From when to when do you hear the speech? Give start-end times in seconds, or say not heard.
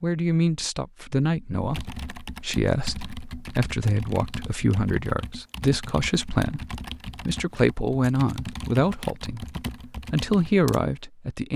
0.0-11.5.